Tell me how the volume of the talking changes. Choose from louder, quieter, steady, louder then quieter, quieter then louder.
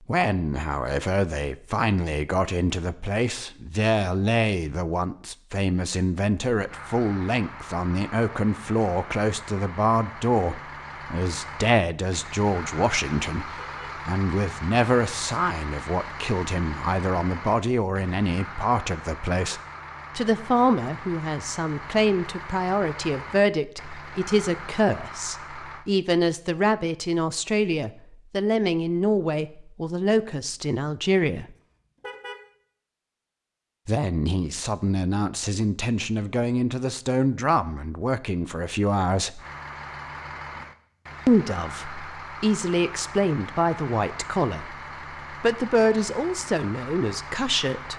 steady.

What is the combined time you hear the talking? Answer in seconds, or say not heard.
44 s.